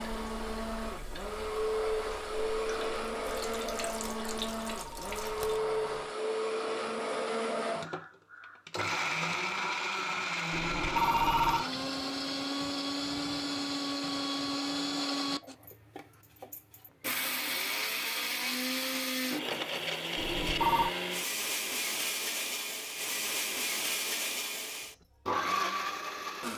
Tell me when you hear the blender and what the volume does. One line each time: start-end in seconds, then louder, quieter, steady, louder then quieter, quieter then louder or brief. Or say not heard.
0.0-26.5 steady.